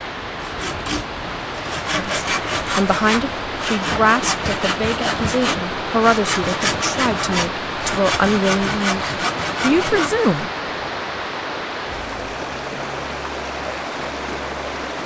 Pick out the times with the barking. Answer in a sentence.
You can't hear the barking here.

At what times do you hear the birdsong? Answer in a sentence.
The birdsong can't be heard in this clip.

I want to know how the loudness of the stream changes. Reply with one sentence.
The loudness of the stream stays about the same.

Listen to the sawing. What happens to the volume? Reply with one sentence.
The loudness of the sawing stays about the same.